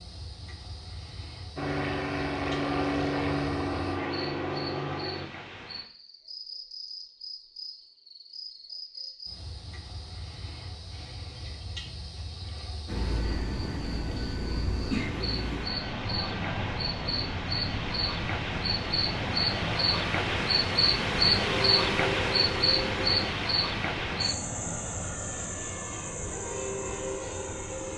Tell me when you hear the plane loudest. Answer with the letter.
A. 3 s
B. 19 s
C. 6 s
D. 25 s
A.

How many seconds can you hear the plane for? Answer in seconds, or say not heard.
19 s.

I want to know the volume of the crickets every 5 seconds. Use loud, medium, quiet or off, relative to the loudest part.
quiet, quiet, quiet, medium, loud, quiet.